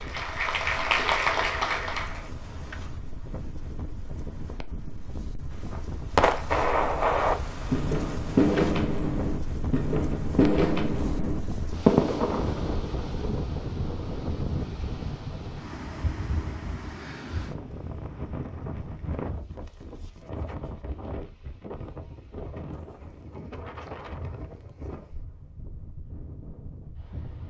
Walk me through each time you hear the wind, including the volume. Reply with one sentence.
The wind can be heard from 0.0 to 27.4 s, getting louder then quieter.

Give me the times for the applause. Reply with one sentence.
The applause can be heard from 0.0 to 2.3 s.